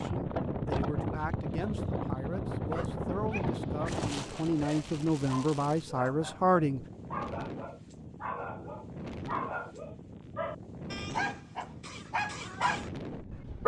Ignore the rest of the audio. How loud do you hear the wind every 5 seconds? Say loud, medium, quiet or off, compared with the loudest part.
loud, medium, medium.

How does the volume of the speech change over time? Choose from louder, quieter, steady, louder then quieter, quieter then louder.
louder.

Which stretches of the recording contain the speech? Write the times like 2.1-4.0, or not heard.
0.0-6.8.